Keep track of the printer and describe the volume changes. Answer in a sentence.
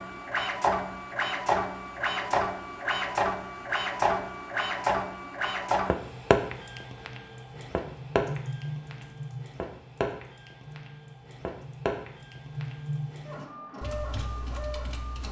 The loudness of the printer goes down.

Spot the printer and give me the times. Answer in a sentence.
The printer can be heard from 0.0 to 15.2 s.